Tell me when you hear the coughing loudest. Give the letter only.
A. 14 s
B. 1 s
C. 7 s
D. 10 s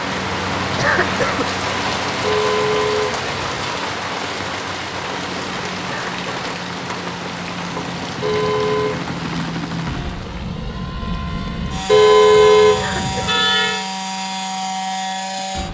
B.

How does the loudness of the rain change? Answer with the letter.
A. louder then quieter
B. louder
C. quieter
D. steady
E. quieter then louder
C.